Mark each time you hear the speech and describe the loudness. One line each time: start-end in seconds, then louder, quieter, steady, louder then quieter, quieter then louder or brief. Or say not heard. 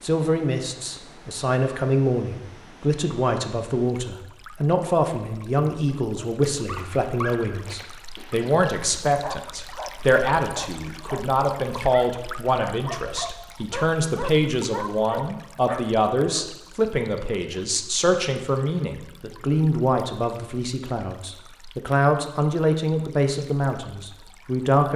0.0-24.9 steady.